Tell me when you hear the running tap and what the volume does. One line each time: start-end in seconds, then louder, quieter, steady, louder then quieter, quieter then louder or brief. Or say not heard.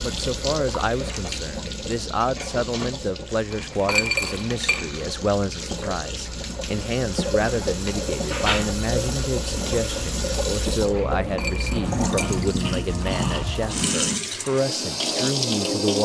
0.0-15.9 louder.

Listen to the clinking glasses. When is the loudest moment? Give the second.
4 s.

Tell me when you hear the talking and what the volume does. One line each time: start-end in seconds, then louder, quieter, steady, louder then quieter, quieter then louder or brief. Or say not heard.
0.0-15.9 steady.